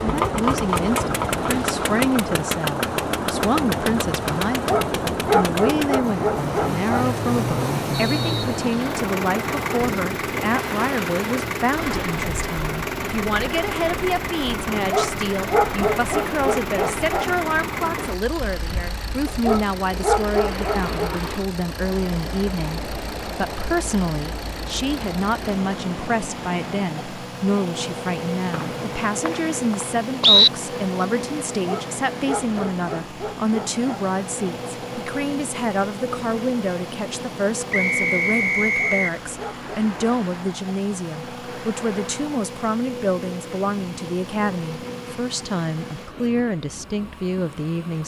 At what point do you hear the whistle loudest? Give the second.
30 s.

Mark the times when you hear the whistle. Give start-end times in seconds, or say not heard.
7.9-8.9, 28.5-30.5, 37.7-39.1.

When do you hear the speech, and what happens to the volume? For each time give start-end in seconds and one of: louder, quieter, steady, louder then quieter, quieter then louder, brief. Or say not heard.
0.0-48.0 steady.